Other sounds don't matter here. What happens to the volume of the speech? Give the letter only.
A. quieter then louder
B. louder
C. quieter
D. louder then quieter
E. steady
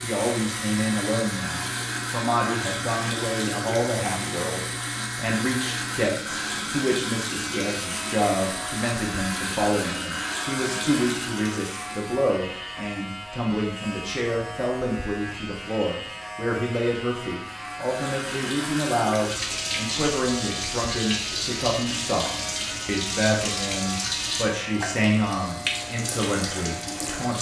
E.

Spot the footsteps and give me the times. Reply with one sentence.
You can't hear the footsteps here.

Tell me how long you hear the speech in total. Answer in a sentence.
You can hear the speech for 27 seconds altogether.